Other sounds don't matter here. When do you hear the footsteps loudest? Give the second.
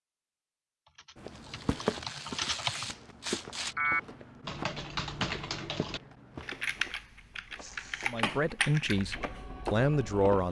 2 s.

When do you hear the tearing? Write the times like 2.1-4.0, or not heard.
1.2-3.8, 7.5-8.2.